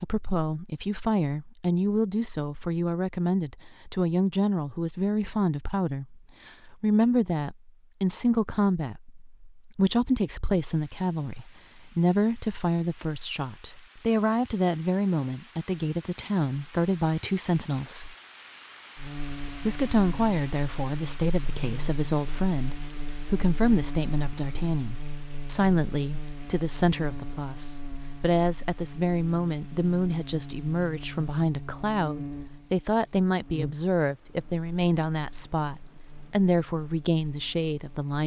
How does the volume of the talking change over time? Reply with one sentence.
The loudness of the talking stays about the same.